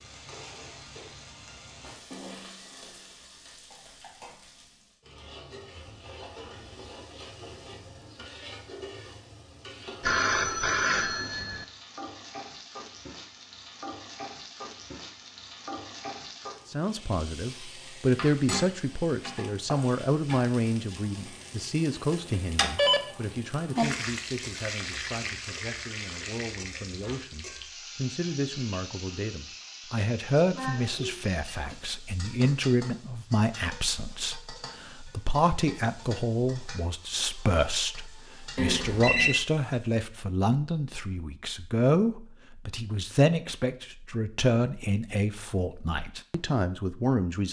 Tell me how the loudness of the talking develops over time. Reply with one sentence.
The volume of the talking goes down, then up.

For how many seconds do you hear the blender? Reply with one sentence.
You can't hear the blender here.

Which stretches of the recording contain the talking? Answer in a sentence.
You can hear the talking from 16.6 to 47.4 s.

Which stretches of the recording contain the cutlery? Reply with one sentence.
You can't hear the cutlery here.